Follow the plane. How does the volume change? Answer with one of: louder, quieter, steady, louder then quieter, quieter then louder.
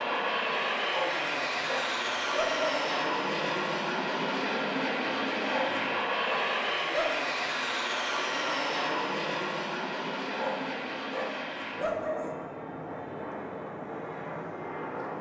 quieter.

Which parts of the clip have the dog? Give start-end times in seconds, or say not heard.
0.8-2.6, 5.5-7.2, 10.3-12.3.